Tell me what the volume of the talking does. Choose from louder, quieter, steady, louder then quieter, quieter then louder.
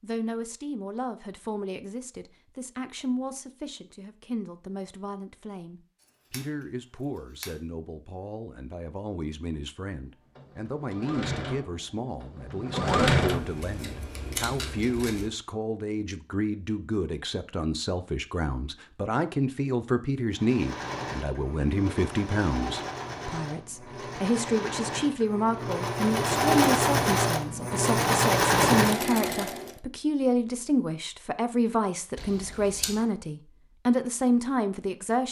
louder.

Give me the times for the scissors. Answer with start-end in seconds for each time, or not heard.
6.0-7.5, 13.2-15.3, 32.1-33.0.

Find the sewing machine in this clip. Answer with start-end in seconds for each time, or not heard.
10.3-13.4, 20.3-29.8.